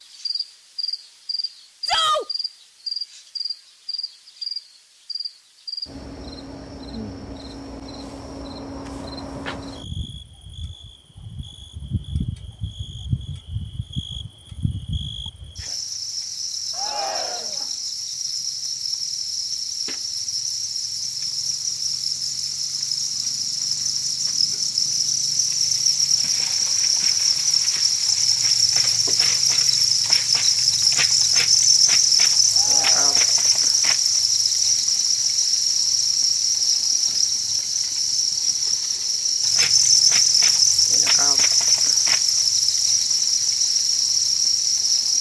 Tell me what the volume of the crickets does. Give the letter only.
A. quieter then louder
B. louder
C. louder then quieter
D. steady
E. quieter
B.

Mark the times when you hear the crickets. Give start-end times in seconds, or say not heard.
0.0-45.1.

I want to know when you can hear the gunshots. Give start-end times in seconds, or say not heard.
not heard.